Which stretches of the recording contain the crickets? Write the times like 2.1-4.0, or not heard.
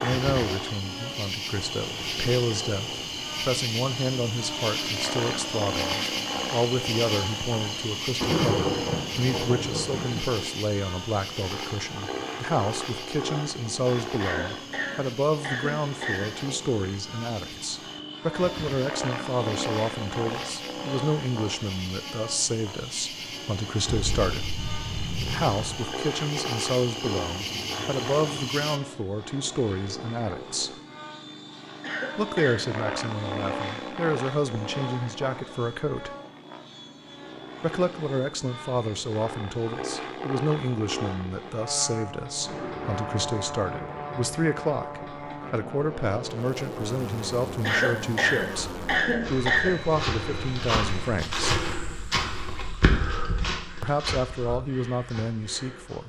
0.0-28.8.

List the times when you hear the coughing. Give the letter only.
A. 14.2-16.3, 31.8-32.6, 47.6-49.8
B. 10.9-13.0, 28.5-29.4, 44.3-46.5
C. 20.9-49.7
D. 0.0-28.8
A.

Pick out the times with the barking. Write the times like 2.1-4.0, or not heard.
not heard.